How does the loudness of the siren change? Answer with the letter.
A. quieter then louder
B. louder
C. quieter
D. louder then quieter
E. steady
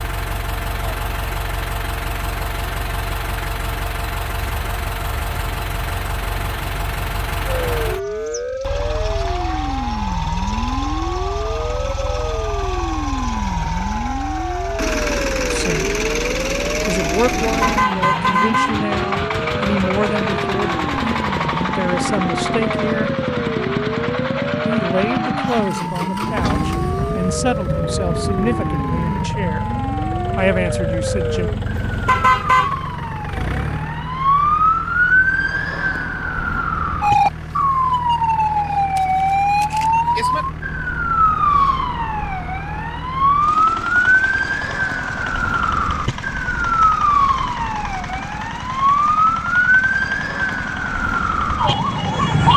B.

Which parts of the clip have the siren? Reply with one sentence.
You can hear the siren from 7.5 to 52.5 s.